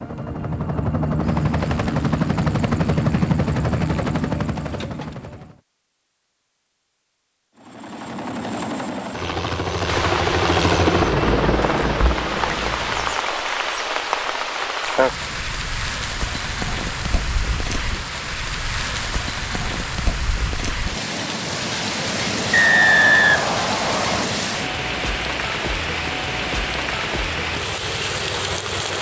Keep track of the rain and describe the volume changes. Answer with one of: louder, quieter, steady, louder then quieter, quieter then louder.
steady.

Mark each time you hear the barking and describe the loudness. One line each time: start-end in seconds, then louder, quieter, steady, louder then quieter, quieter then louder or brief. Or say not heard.
not heard.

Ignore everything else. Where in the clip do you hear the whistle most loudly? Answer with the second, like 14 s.
23 s.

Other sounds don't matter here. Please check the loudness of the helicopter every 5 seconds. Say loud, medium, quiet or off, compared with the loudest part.
loud, medium, loud, off, off, off.